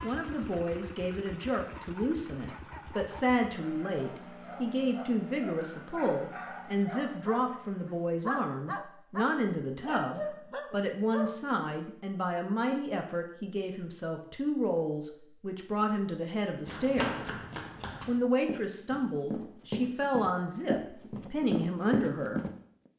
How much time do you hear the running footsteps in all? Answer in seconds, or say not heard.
6 s.